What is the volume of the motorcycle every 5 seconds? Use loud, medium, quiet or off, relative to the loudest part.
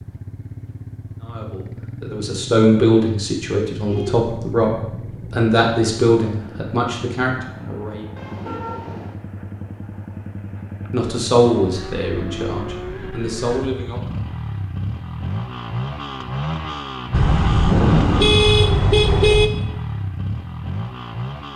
medium, medium, medium, loud, loud.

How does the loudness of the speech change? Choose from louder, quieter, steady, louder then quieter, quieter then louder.
quieter.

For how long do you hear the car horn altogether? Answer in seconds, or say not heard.
5 s.